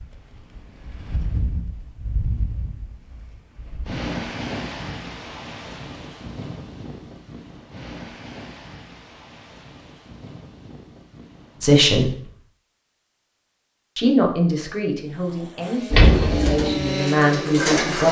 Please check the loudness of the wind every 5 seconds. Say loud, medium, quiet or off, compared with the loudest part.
loud, medium, quiet, off.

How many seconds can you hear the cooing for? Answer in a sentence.
You can hear the cooing for 2 seconds altogether.